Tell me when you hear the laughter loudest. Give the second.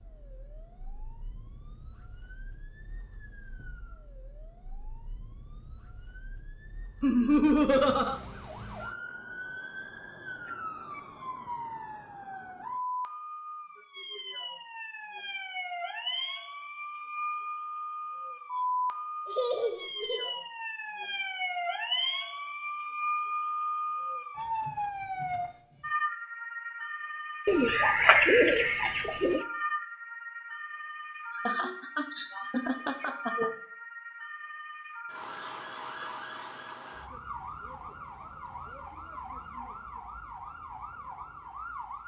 7 s.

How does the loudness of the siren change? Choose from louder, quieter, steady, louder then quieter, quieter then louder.
louder then quieter.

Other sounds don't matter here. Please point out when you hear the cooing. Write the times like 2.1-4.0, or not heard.
27.4-29.4.